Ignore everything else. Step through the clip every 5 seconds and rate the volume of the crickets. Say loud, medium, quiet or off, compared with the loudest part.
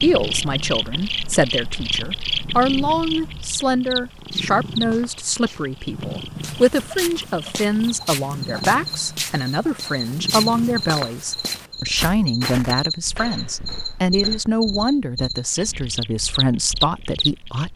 loud, medium, loud, loud.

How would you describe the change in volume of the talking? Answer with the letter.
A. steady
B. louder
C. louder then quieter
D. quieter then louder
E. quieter
A.